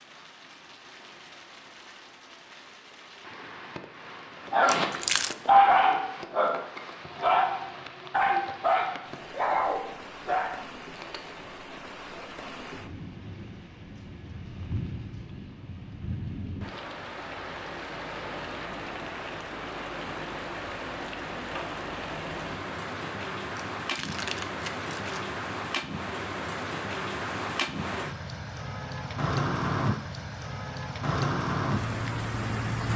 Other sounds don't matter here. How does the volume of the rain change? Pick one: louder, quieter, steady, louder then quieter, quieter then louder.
louder.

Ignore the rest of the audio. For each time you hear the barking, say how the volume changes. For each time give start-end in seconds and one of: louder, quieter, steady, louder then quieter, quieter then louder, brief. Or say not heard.
4.5-11.3 quieter.